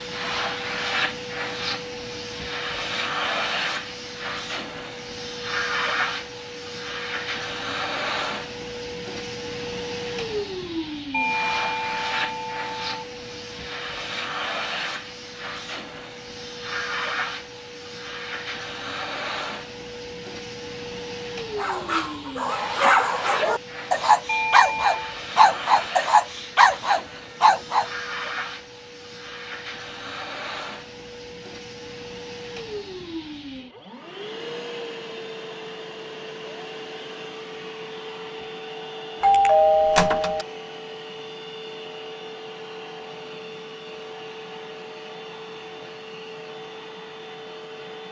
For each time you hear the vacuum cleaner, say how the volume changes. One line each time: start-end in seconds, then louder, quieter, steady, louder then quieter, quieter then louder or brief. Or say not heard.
0.0-48.0 quieter.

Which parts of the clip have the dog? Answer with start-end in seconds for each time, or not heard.
21.6-27.9.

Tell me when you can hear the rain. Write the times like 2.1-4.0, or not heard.
not heard.